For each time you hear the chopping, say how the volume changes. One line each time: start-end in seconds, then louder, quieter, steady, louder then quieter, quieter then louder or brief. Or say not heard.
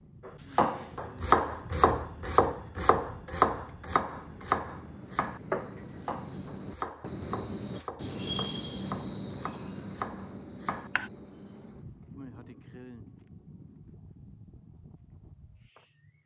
0.2-11.1 quieter.